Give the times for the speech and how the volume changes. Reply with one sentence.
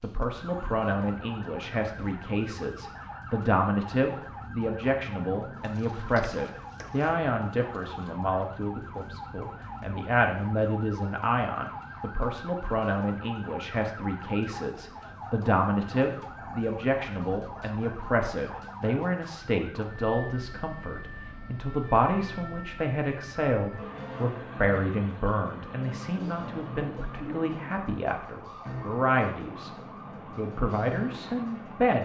You can hear the speech from 0.0 to 29.7 s, at a steady volume; and briefly from 30.4 to 31.9 s.